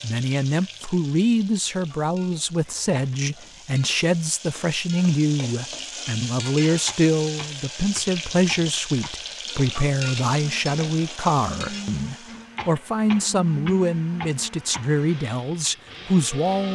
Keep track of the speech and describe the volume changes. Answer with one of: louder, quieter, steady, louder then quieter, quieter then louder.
steady.